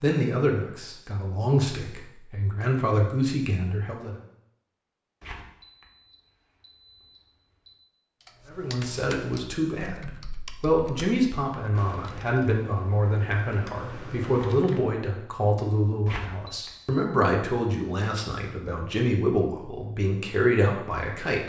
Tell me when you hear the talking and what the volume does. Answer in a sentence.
You can hear the talking from 0.0 to 4.2 s, getting quieter then louder; and from 8.5 to 21.4 s, at a steady volume.